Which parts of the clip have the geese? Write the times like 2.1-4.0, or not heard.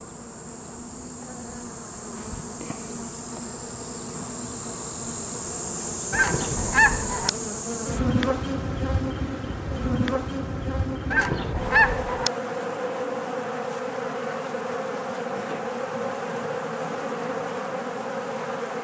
6.1-7.3, 11.1-12.3.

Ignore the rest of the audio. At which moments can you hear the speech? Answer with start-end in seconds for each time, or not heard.
not heard.